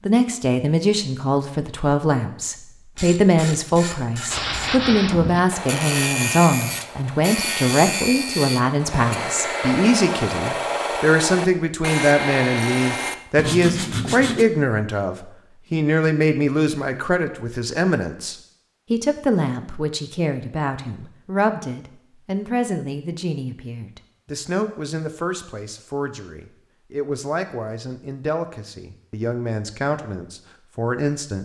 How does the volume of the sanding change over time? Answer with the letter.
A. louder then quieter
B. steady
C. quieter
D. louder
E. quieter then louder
B.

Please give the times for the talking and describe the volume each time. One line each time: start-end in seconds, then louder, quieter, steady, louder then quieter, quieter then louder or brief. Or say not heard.
0.1-31.4 quieter.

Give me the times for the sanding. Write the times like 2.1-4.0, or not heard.
4.3-14.4.